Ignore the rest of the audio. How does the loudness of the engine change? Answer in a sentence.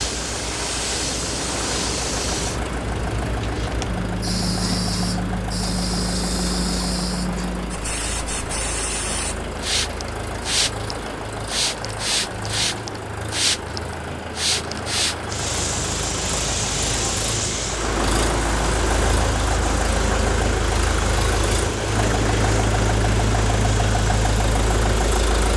The volume of the engine goes up.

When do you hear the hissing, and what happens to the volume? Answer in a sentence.
The hissing can be heard from 0.0 to 25.5 s, getting quieter.